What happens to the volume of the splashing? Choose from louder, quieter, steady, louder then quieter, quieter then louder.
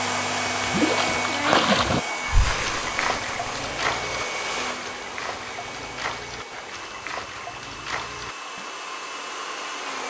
quieter.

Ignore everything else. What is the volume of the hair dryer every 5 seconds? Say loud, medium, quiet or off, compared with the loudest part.
loud, medium.